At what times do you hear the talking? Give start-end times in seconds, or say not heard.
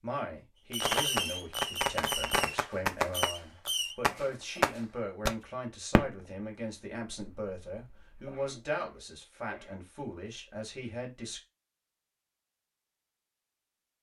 0.0-11.4.